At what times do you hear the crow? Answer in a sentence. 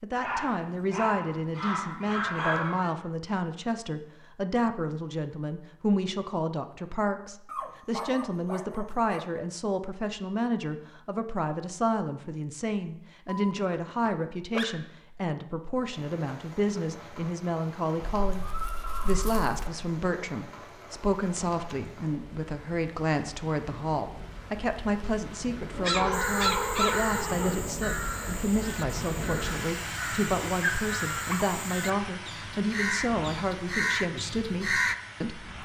The crow can be heard from 26.1 to 35.0 s.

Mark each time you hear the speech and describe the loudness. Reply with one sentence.
You can hear the speech from 0.0 to 18.4 s, at a steady volume; and from 19.1 to 35.6 s, at a steady volume.